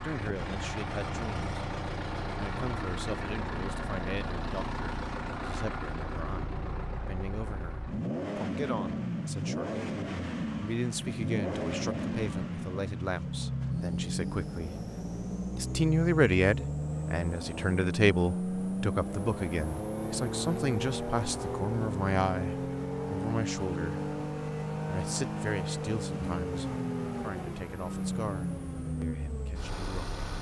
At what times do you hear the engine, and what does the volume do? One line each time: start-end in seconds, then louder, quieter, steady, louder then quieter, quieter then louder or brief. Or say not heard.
0.0-30.3 steady.